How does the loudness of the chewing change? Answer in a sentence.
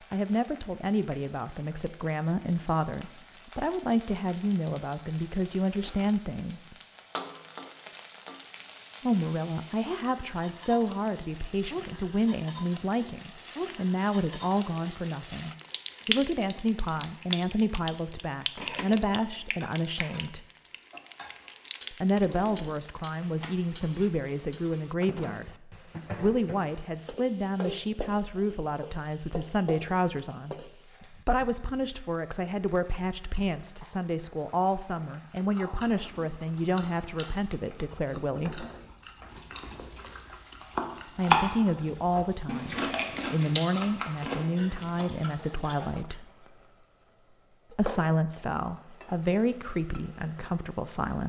The volume of the chewing goes up, then down.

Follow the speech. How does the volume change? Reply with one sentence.
The loudness of the speech stays about the same.